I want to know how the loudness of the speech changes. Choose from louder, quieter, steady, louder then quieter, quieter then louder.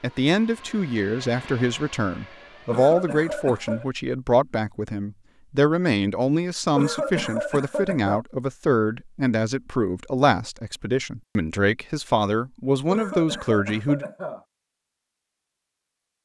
steady.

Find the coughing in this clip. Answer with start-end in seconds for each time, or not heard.
2.6-3.9, 6.8-8.2, 12.8-14.4.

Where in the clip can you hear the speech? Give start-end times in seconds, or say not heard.
0.0-14.1.